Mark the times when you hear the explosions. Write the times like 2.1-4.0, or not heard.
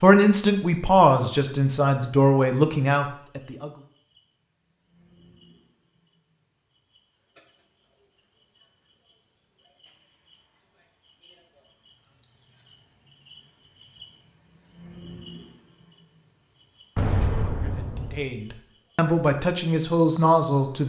16.9-18.2.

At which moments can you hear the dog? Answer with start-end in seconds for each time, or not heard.
not heard.